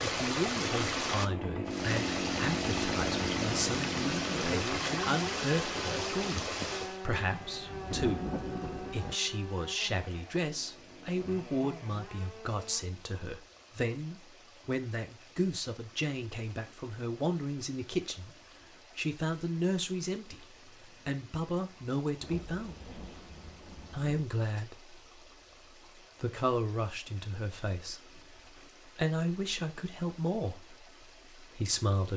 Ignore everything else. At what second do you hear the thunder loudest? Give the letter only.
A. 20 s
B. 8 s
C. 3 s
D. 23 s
B.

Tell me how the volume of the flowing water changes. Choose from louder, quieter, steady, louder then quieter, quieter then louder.
quieter.